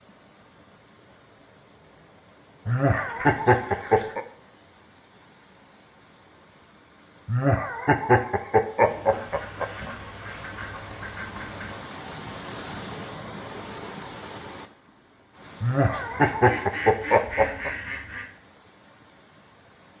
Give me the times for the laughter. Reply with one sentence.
The laughter can be heard from 2.6 to 4.2 s, from 7.2 to 9.9 s and from 15.6 to 17.7 s.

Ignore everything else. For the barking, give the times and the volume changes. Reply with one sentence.
You can't hear the barking here.